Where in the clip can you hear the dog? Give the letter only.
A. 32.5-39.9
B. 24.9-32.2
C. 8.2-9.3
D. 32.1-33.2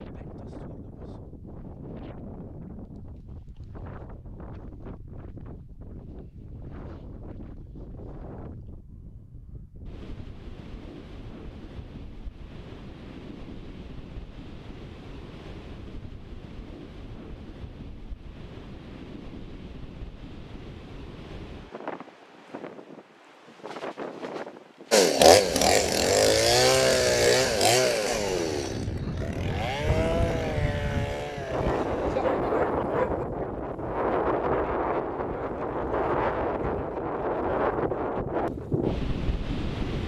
D.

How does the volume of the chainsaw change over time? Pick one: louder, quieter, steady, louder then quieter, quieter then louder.
quieter.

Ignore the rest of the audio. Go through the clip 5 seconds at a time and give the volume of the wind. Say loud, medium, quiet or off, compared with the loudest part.
quiet, quiet, quiet, quiet, quiet, medium, loud, loud.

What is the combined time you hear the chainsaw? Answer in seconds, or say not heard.
7 s.